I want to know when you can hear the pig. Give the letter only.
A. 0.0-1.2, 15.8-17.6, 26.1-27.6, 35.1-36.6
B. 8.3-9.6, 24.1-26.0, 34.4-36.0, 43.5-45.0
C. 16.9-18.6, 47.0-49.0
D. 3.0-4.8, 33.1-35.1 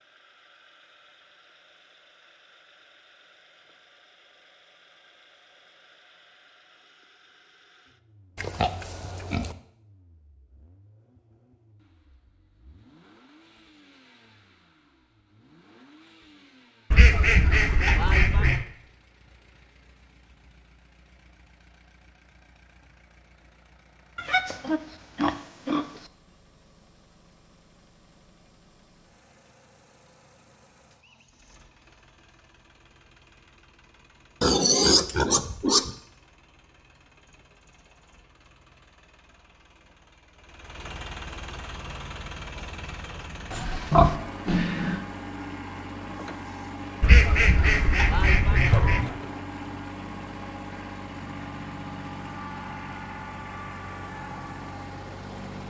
B.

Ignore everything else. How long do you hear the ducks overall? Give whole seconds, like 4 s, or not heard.
4 s.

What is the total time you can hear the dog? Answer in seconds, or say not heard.
not heard.